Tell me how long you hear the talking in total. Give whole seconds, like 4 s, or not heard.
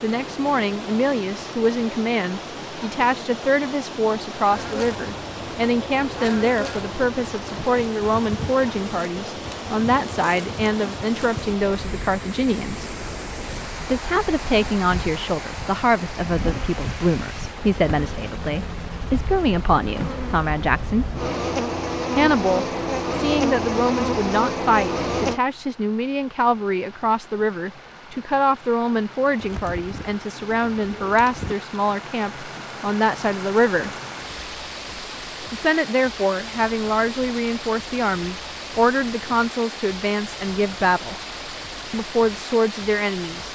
39 s.